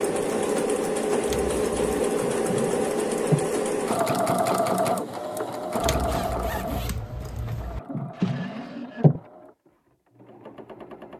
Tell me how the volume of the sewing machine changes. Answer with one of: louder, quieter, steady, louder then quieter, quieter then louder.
quieter.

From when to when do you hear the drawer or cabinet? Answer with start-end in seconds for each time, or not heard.
2.1-3.5, 7.9-9.2.